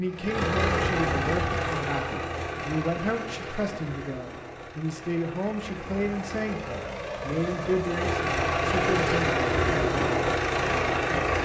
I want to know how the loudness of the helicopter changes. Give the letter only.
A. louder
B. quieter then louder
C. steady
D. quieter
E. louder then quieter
B.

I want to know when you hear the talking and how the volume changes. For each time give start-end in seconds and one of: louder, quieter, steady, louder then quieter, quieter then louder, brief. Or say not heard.
0.0-9.2 steady.